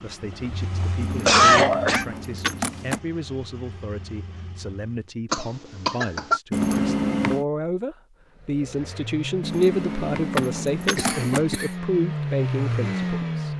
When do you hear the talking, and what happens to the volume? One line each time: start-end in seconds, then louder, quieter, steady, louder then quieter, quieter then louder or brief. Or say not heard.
0.0-13.5 louder.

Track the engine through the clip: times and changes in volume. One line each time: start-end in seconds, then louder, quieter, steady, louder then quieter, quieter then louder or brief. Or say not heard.
0.0-5.1 quieter
8.3-13.5 louder.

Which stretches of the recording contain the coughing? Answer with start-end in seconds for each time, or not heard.
1.2-2.0, 5.3-6.4, 10.9-11.7.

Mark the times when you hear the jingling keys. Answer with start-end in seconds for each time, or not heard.
1.0-3.0, 6.5-7.5, 9.4-11.4.